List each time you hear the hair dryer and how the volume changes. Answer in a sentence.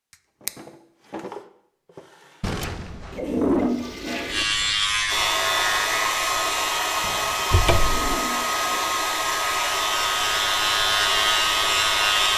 The hair dryer can be heard from 5.0 to 12.3 s, at a steady volume.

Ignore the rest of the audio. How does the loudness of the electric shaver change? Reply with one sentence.
The volume of the electric shaver goes down, then up.